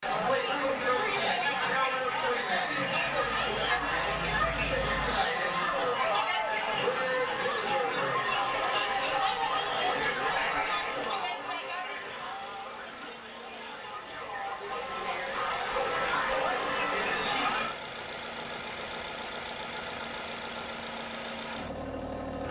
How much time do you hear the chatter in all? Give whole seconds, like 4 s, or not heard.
18 s.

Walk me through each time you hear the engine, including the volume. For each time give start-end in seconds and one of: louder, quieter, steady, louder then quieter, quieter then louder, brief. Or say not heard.
3.1-5.3 brief
11.8-22.4 louder.